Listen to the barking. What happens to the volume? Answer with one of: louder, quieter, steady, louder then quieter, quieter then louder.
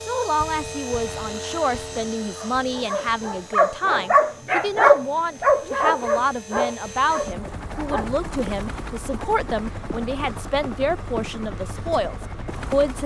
louder then quieter.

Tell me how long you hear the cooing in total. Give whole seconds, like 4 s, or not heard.
not heard.